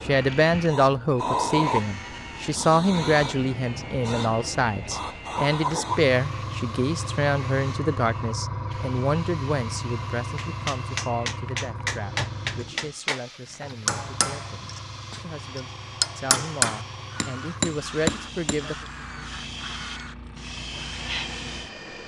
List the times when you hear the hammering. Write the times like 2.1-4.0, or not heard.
10.3-18.6.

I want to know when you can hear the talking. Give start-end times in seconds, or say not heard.
0.0-18.8.